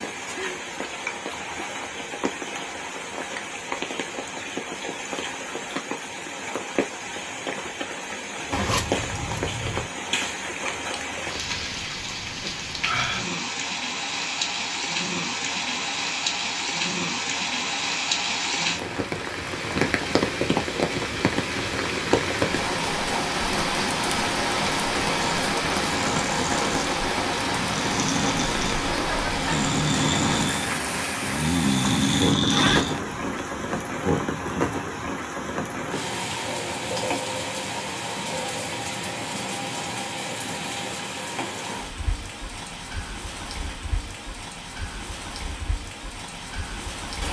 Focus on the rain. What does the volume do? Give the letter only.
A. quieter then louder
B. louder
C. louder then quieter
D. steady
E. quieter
C.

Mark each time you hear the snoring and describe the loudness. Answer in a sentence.
You can hear the snoring from 25.2 to 33.0 s, getting louder.